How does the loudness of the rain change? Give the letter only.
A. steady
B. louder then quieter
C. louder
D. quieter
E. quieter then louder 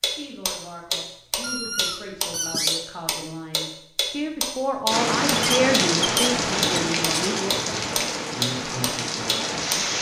D.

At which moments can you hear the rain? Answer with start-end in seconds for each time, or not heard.
4.9-9.9.